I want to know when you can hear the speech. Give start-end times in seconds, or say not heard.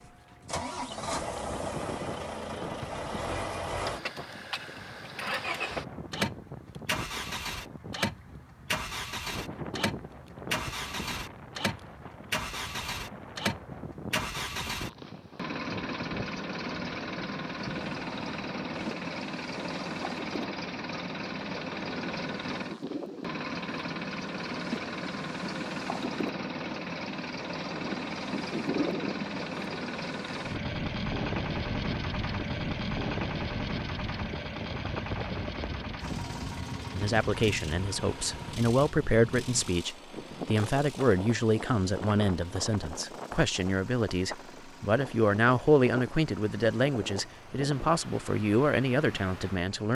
37.0-49.8.